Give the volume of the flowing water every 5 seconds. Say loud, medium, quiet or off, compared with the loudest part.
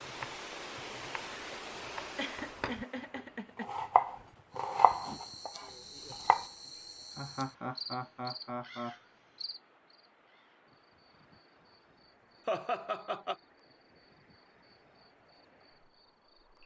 loud, quiet, quiet, quiet.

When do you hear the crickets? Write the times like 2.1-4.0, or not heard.
4.5-16.6.